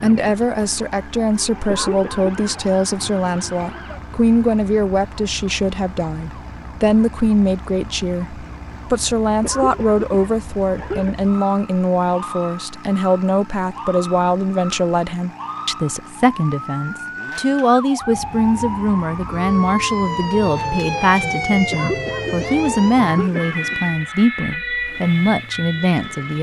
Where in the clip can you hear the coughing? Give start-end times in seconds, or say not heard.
1.6-2.6, 9.4-11.2, 21.7-23.8.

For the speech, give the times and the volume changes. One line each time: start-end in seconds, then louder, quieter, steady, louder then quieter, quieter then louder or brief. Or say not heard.
0.0-26.3 steady.